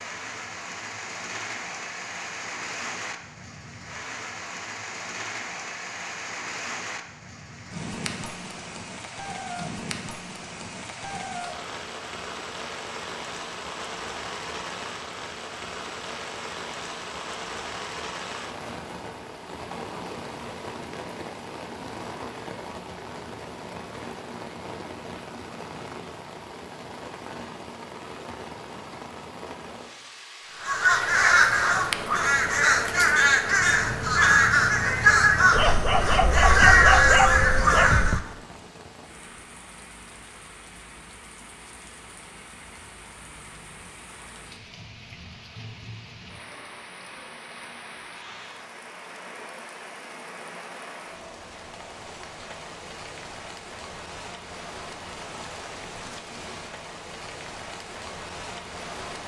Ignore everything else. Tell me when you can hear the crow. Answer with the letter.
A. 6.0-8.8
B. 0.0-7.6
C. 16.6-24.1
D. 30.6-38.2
D.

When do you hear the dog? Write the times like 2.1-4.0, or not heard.
35.5-38.2.